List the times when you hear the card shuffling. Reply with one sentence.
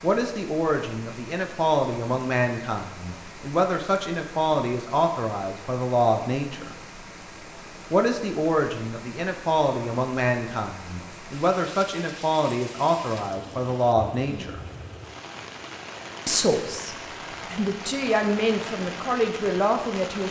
The card shuffling can't be heard in this clip.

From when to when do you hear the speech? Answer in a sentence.
You can hear the speech from 0.0 to 6.8 s, from 7.9 to 14.6 s and from 16.2 to 20.2 s.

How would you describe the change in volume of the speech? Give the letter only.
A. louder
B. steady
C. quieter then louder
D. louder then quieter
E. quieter
B.